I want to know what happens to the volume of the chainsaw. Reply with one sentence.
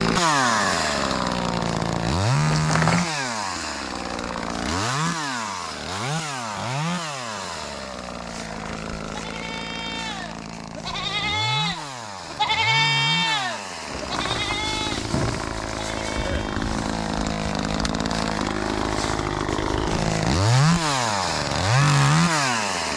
The volume of the chainsaw goes down, then up.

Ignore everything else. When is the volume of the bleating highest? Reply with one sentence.
The loudest moment of the bleating is at 13 seconds.